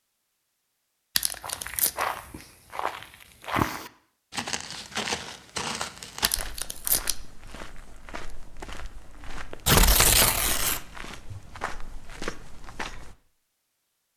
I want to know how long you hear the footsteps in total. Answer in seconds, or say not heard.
12 s.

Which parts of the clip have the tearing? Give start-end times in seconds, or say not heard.
1.1-2.0, 6.2-7.2, 9.7-10.8.